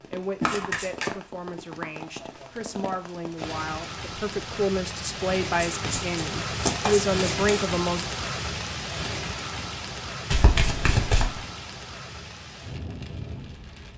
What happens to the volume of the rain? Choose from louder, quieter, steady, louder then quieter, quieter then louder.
louder then quieter.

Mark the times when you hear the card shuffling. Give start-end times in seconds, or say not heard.
0.4-1.1, 5.6-7.7, 10.3-11.4.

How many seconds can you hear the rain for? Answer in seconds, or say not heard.
14 s.